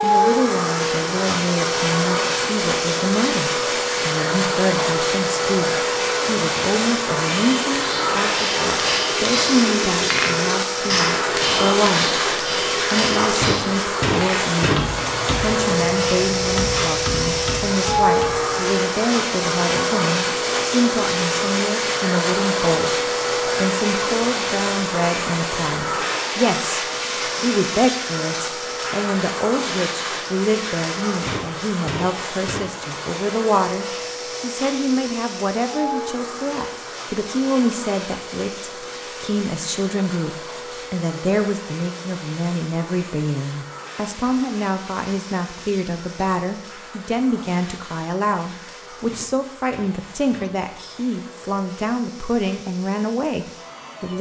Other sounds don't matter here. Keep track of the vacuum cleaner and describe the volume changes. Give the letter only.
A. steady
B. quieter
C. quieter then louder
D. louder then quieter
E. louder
B.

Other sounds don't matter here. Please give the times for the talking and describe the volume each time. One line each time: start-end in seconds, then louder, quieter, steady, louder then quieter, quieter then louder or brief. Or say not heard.
0.0-54.1 steady.